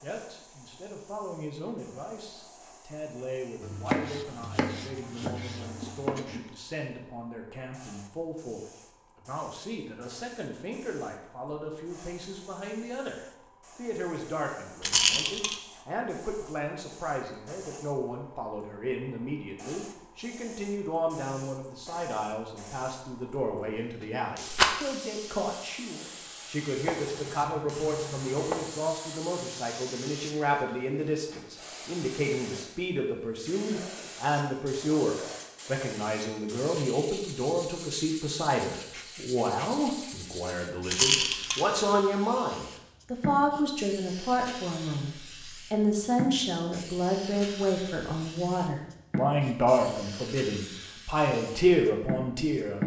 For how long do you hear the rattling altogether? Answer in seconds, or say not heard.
2 s.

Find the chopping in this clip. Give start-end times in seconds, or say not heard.
3.6-6.5, 26.9-28.7.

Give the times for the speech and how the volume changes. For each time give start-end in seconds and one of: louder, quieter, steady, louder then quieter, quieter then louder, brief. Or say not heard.
0.0-52.8 louder.